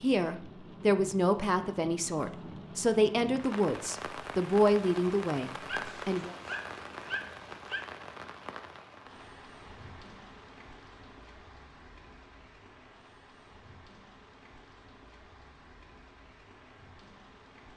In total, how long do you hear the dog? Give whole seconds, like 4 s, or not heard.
2 s.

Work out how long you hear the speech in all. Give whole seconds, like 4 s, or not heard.
6 s.